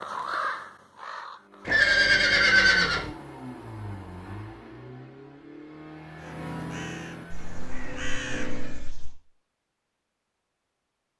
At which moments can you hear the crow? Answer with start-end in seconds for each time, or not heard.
0.0-1.9, 6.2-8.9.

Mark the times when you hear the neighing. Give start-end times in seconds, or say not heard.
1.6-3.1, 7.3-9.2.